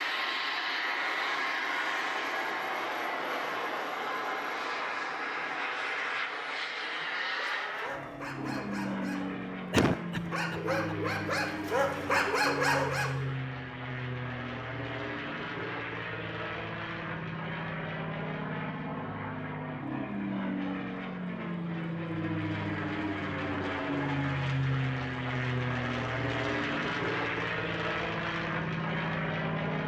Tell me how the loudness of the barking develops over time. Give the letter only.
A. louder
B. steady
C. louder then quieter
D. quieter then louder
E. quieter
A.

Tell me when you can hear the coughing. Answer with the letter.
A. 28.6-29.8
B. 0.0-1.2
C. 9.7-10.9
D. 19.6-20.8
C.